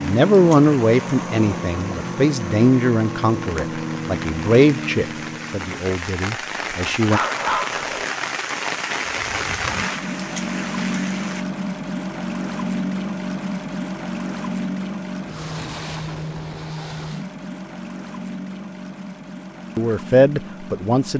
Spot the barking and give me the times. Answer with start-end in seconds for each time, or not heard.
6.7-8.1.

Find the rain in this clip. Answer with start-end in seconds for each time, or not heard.
0.0-11.4.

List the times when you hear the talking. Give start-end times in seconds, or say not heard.
0.0-7.2, 19.8-21.1.